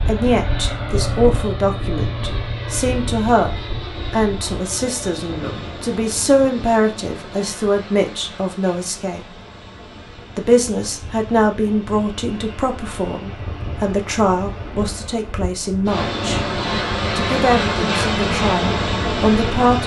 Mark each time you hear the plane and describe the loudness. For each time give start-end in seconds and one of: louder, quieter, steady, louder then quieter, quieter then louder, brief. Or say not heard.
0.0-19.8 quieter then louder.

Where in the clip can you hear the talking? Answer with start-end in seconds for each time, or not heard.
0.0-9.2, 10.3-16.4, 17.1-19.8.